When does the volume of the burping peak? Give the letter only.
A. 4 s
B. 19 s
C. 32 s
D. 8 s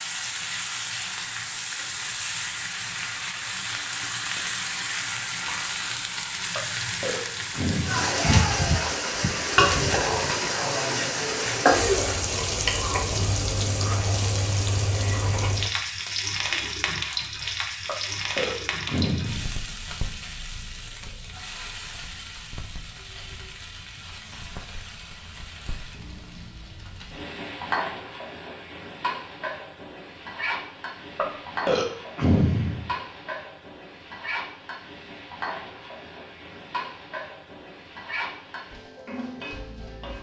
C.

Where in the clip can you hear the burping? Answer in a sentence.
You can hear the burping from 6.5 to 8.2 s, from 17.9 to 19.6 s and from 31.1 to 32.9 s.